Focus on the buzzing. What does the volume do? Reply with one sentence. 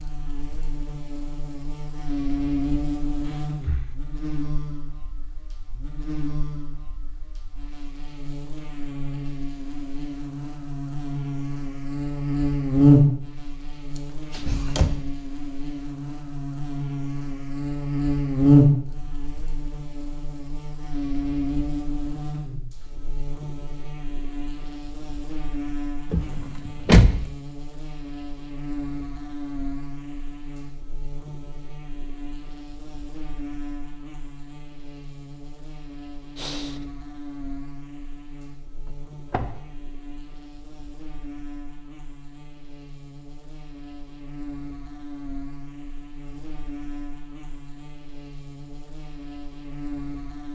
The volume of the buzzing goes up, then down.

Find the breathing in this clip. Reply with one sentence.
The breathing can be heard from 3.2 to 4.0 s and from 36.4 to 36.9 s.